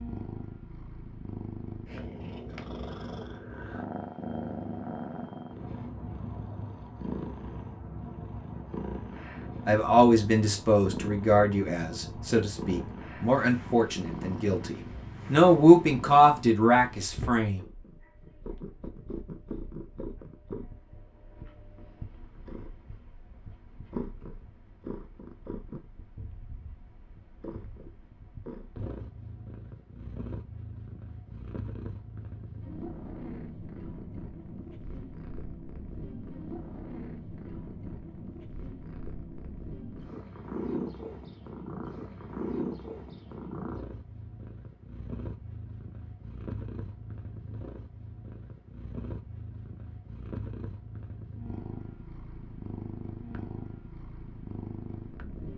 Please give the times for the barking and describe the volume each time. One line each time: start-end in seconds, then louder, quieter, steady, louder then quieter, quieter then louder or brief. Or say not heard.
not heard.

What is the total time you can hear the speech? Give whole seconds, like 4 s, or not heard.
8 s.